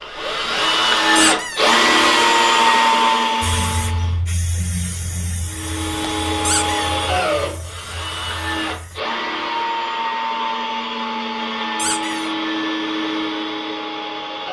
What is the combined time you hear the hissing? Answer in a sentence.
You can hear the hissing for 6 seconds altogether.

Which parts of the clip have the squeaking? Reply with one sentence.
You can hear the squeaking from 1.1 to 1.7 s, from 6.4 to 7.0 s and from 11.8 to 12.3 s.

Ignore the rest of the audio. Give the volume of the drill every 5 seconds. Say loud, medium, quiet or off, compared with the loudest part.
loud, medium, medium.